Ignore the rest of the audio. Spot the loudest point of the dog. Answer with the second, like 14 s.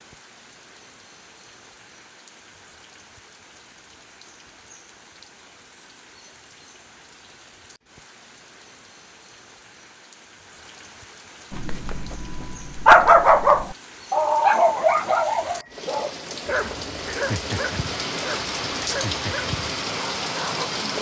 13 s.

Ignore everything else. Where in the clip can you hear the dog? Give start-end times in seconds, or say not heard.
11.5-20.9.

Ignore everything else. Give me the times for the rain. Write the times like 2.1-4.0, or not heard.
0.0-20.9.